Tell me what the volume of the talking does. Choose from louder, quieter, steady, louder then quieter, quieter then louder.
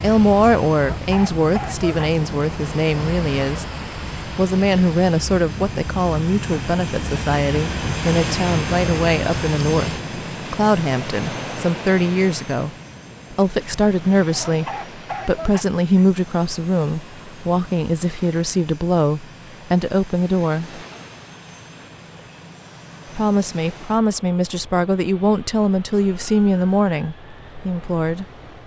steady.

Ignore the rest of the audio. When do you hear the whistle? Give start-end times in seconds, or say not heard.
not heard.